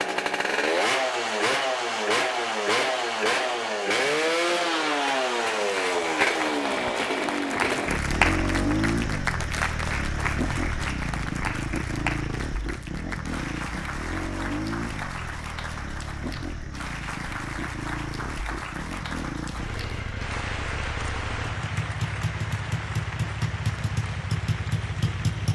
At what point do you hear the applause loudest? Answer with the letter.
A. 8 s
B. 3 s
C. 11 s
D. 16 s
A.